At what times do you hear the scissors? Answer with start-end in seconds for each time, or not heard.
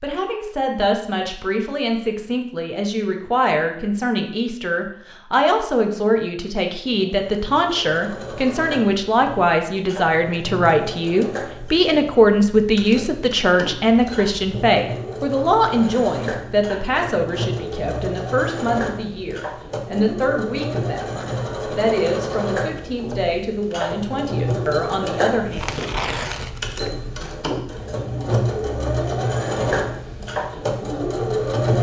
not heard.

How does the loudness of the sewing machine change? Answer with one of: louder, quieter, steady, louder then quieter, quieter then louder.
louder.